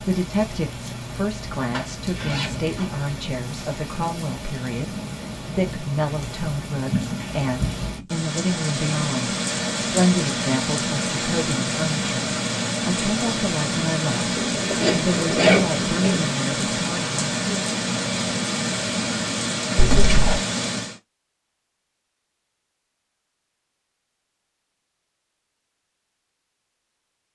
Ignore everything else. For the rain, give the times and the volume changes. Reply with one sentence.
You can hear the rain from 0.0 to 21.0 s, getting louder.